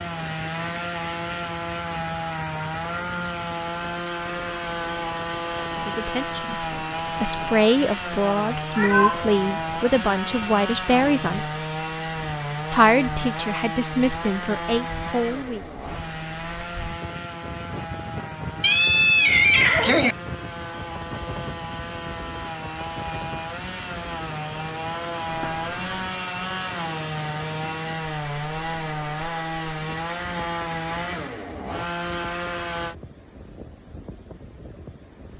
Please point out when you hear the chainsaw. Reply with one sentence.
You can hear the chainsaw from 0.0 to 33.0 s.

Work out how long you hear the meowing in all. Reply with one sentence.
The meowing can be heard for 3 seconds in total.